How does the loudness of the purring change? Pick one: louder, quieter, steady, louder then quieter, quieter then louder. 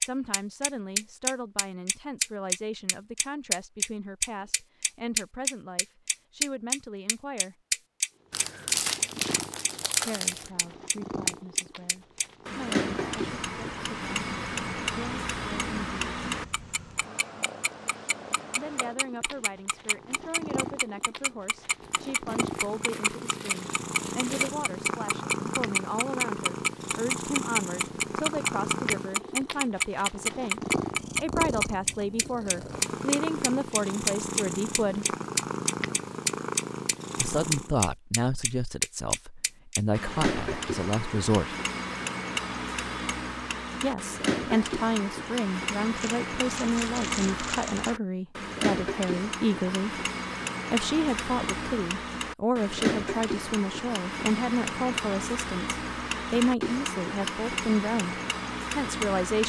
louder.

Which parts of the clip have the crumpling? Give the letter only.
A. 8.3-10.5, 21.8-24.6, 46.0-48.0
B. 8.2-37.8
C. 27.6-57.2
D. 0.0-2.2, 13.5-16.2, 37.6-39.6
A.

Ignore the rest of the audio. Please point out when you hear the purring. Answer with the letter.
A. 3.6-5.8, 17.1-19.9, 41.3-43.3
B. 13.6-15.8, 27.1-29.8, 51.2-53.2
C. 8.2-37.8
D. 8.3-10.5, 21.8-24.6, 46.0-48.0
C.